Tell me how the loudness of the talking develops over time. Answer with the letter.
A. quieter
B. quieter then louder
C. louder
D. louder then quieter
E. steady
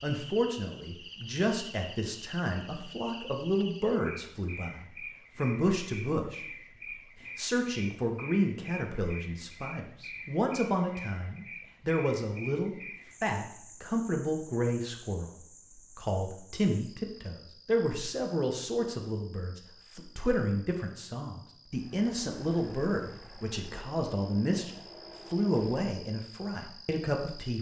E.